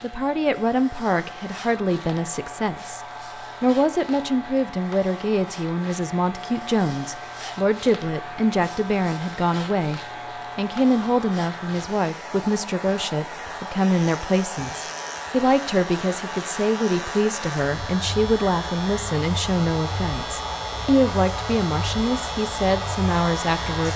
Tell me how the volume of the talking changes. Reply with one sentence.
The volume of the talking stays about the same.